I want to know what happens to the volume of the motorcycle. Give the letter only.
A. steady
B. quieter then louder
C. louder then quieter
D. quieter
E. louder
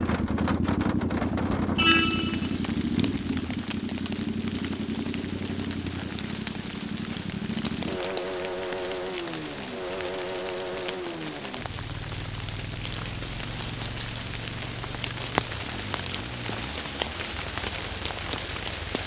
D.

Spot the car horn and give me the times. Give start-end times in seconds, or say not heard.
1.8-2.5.